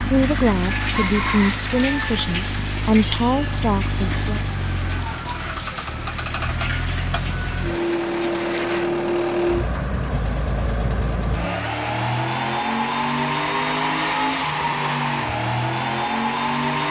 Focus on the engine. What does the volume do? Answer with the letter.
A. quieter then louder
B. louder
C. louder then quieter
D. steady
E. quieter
B.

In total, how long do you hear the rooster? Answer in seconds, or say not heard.
2 s.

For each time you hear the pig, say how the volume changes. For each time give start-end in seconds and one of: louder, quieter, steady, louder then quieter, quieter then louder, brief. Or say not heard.
not heard.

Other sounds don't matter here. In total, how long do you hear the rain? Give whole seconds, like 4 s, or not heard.
9 s.